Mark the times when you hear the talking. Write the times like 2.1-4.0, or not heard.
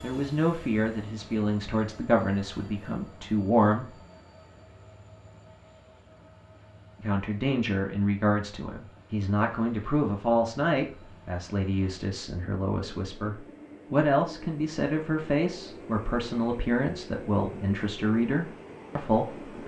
0.0-4.0, 7.0-19.6.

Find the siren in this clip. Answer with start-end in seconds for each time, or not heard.
not heard.